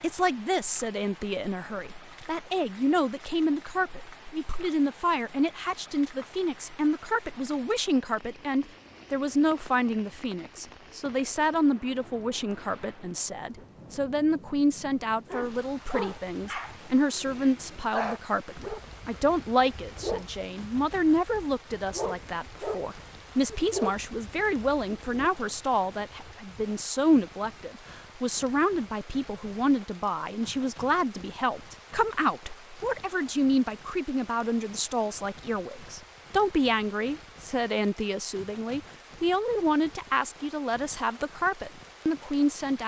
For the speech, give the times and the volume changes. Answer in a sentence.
The speech can be heard from 0.0 to 42.8 s, at a steady volume.